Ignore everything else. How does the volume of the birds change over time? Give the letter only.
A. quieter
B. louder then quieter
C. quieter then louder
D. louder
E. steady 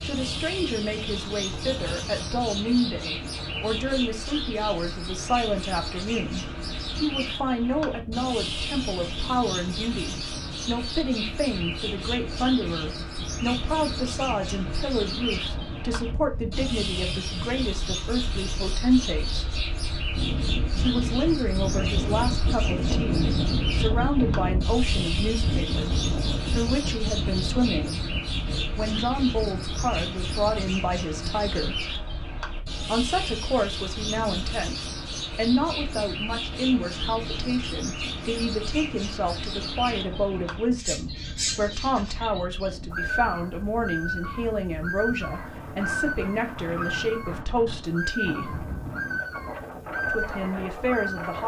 E.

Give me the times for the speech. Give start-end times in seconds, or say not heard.
0.0-19.5, 20.8-28.0, 28.7-31.9, 32.9-48.6, 50.0-51.4.